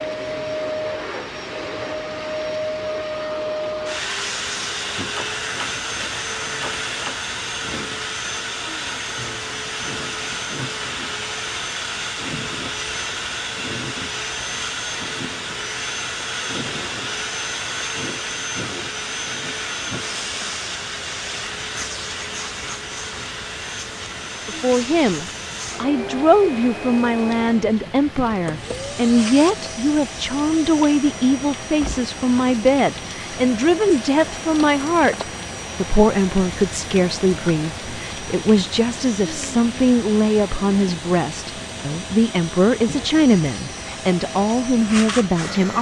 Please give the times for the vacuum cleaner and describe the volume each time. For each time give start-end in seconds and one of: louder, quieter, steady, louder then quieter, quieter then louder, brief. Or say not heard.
0.0-45.7 quieter.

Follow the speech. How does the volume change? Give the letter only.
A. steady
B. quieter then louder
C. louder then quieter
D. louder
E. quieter
A.